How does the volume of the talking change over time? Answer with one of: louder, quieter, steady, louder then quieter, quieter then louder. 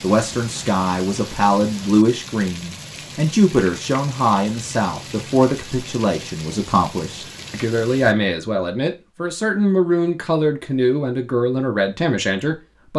steady.